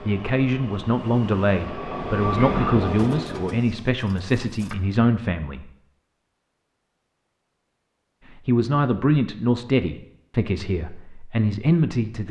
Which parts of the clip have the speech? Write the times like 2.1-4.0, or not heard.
0.0-5.7, 8.4-12.2.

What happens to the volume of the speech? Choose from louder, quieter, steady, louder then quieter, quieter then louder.
steady.